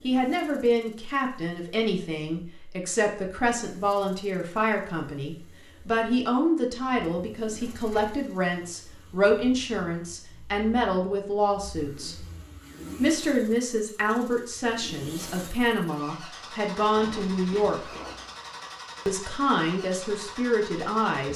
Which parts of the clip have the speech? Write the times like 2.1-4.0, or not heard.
0.0-12.2, 12.9-17.9, 19.1-21.3.